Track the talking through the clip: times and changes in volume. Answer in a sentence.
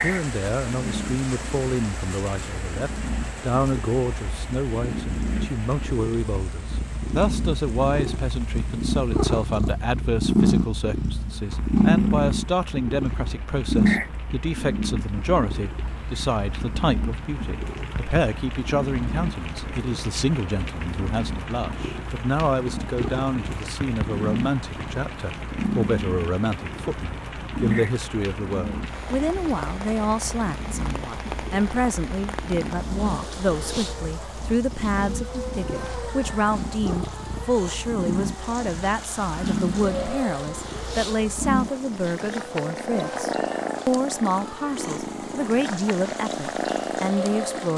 You can hear the talking from 0.0 to 47.7 s, at a steady volume.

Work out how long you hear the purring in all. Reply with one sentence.
You can hear the purring for 48 seconds altogether.